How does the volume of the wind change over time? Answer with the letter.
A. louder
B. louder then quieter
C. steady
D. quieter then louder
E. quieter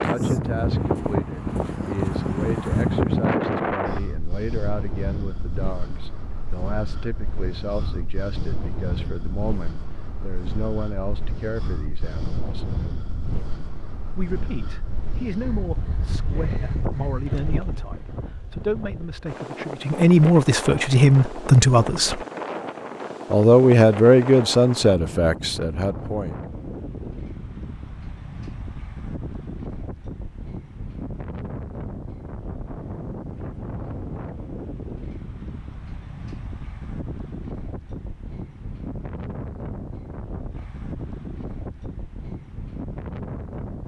E.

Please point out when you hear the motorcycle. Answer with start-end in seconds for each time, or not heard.
not heard.